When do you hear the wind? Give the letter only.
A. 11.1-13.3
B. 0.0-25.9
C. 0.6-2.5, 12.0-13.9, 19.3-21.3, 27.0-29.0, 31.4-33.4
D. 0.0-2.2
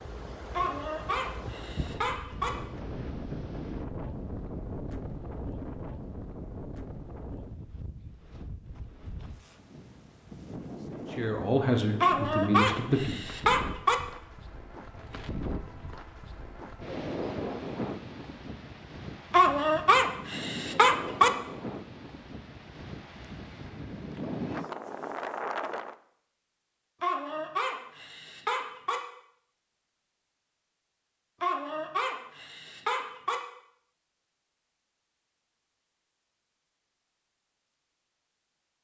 B.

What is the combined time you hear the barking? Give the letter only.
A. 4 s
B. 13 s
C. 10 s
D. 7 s
C.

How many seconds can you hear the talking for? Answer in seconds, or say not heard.
2 s.